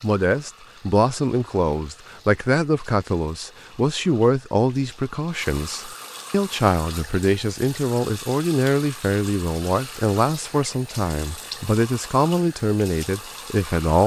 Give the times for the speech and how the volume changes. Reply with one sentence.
The speech can be heard from 0.0 to 14.0 s, at a steady volume.